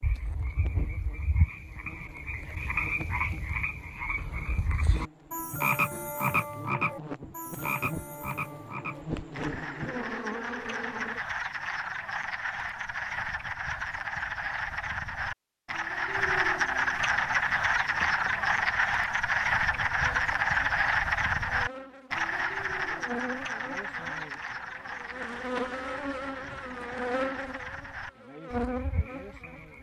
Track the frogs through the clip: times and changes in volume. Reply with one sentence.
You can hear the frogs from 0.0 to 29.7 s, getting louder then quieter.